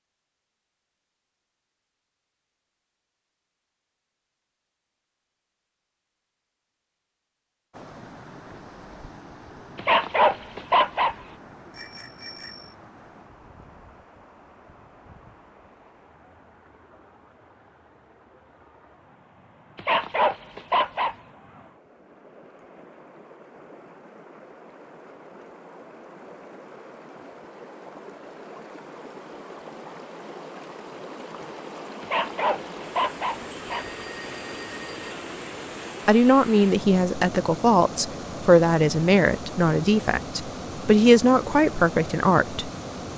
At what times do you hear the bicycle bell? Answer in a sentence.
The bicycle bell can be heard from 11.7 to 12.8 s and from 33.7 to 35.1 s.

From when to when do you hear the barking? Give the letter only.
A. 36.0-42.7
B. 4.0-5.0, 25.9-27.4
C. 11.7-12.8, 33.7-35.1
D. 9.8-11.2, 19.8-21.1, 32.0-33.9
D.